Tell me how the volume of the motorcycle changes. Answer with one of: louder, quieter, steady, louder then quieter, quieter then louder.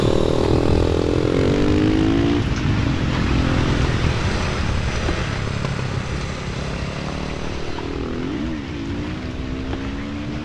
quieter.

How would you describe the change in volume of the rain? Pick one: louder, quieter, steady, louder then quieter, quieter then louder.
quieter.